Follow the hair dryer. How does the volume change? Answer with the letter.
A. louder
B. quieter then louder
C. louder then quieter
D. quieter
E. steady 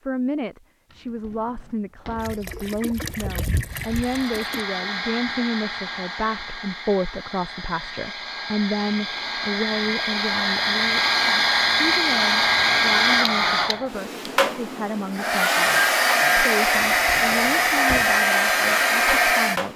A.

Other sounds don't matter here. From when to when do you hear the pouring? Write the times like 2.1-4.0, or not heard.
2.1-4.7.